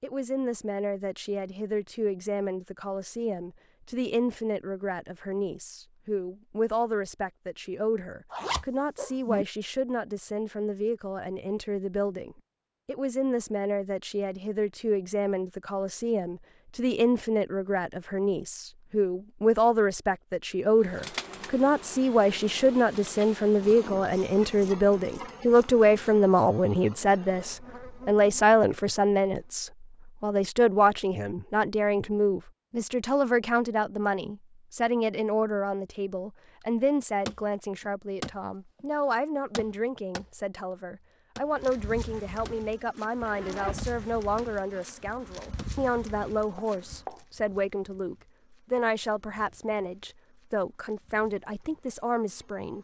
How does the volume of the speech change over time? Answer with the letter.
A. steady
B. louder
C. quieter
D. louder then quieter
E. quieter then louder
D.